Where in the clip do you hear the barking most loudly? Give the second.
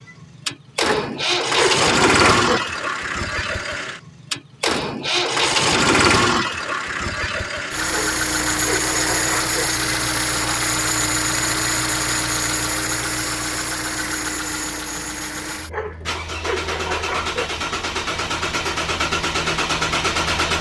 2 s.